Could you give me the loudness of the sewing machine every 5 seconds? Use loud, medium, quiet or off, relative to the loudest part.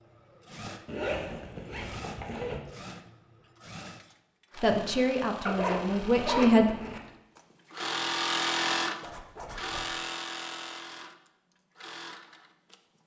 quiet, loud, medium.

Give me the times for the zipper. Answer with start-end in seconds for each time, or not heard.
0.8-2.6, 5.5-7.0, 9.0-9.9.